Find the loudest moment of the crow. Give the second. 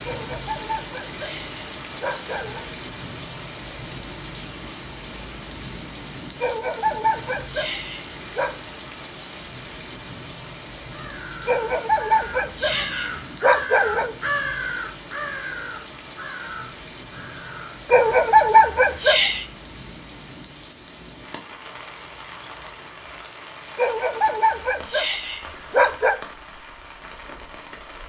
14 s.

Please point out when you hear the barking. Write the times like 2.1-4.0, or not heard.
0.1-2.7, 6.4-8.6, 11.4-14.2, 17.9-19.4, 23.8-26.1.